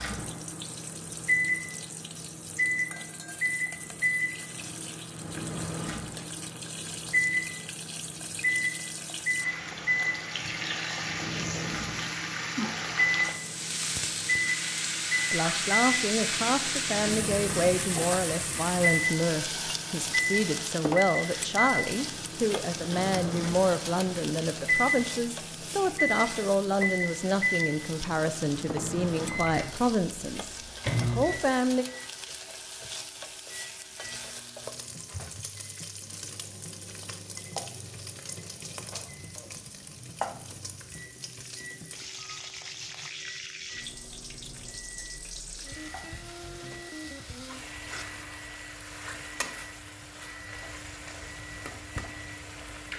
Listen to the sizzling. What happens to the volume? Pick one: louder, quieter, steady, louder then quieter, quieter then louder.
louder then quieter.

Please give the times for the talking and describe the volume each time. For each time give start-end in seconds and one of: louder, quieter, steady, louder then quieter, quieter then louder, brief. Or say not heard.
15.3-31.9 steady.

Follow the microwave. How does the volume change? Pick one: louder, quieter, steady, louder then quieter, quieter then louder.
quieter.